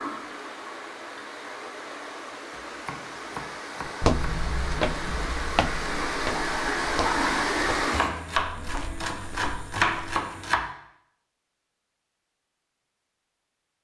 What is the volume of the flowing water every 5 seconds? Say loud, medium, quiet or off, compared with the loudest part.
medium, loud, off.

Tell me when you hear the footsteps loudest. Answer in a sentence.
The volume of the footsteps peaks at 4 seconds.